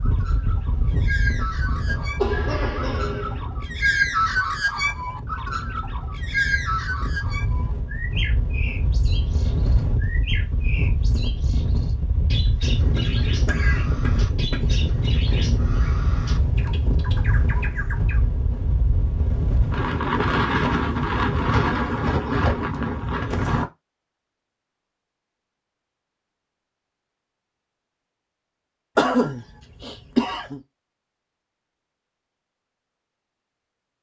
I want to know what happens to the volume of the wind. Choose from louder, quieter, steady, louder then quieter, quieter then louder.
louder.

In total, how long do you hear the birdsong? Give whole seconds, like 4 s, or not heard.
18 s.